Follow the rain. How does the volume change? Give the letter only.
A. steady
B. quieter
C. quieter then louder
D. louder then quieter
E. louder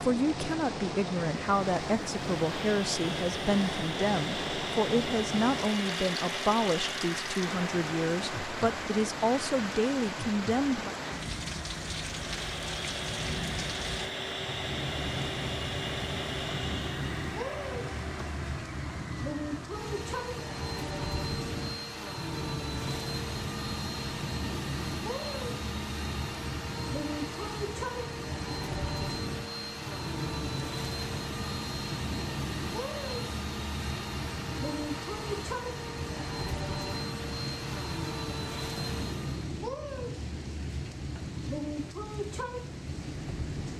A.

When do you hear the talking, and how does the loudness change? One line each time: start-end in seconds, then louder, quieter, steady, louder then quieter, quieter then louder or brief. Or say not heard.
0.0-10.9 steady.